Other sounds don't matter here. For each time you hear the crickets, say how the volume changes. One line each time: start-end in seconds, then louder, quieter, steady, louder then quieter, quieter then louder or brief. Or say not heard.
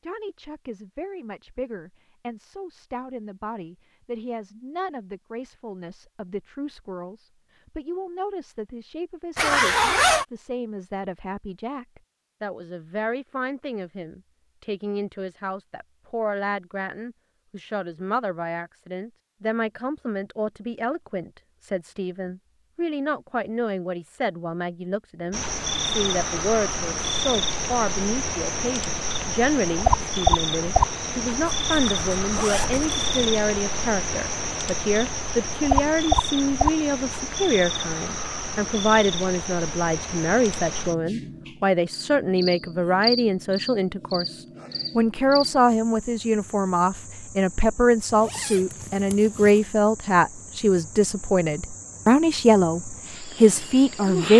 25.3-54.3 quieter.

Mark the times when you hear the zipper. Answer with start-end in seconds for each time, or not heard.
9.3-10.2, 31.6-33.3, 48.0-49.6.